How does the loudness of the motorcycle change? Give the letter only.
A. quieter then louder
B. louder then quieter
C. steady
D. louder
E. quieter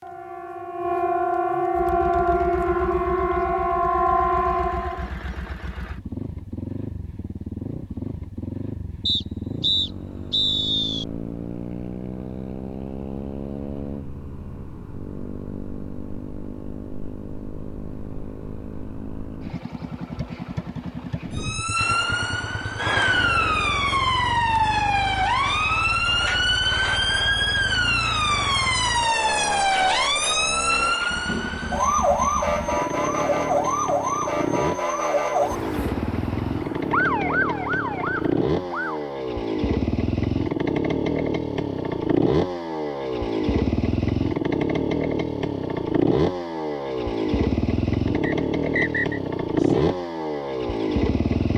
D.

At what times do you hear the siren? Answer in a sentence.
The siren can be heard from 0.0 to 5.1 s and from 21.4 to 39.0 s.